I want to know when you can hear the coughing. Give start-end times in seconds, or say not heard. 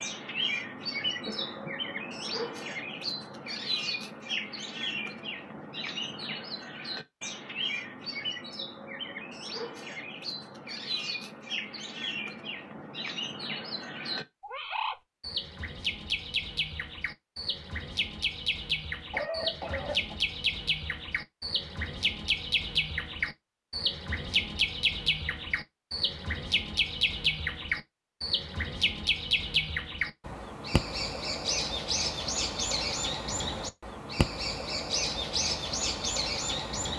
1.2-1.8, 19.1-20.1.